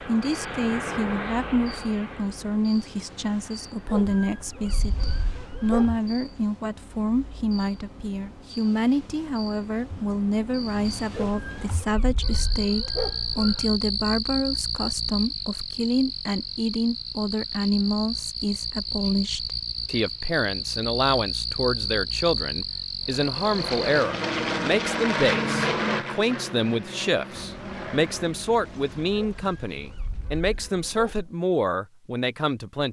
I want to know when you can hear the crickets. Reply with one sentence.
You can hear the crickets from 0.0 to 24.1 s.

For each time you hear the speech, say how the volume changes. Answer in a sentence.
You can hear the speech from 0.0 to 32.8 s, at a steady volume.